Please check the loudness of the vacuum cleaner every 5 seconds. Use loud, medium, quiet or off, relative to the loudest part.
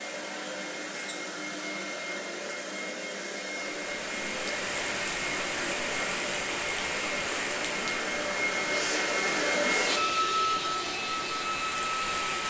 medium, loud, loud.